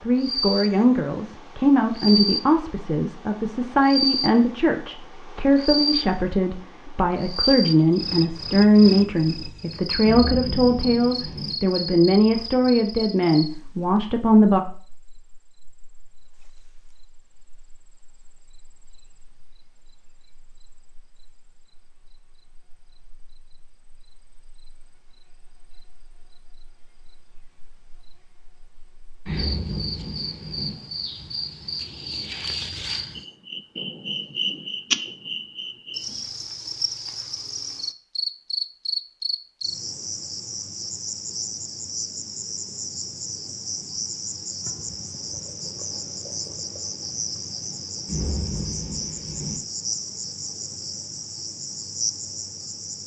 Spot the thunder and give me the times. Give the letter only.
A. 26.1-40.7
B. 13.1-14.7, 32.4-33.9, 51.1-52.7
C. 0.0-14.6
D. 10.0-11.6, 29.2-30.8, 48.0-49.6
D.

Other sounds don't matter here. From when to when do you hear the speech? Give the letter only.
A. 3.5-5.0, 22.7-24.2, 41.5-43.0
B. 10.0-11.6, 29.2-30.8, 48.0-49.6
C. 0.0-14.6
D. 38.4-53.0
C.